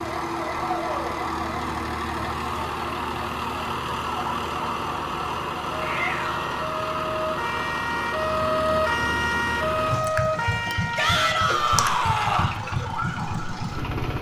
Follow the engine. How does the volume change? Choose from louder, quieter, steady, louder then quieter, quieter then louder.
steady.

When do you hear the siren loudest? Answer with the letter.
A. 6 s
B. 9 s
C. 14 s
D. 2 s
B.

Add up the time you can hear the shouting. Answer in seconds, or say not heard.
3 s.